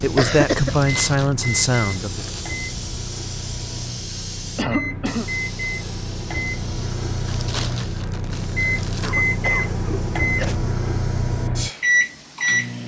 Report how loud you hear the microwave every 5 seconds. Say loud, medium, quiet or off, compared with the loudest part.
medium, loud, loud.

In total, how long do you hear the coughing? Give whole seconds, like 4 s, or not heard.
3 s.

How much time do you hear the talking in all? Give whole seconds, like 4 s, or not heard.
2 s.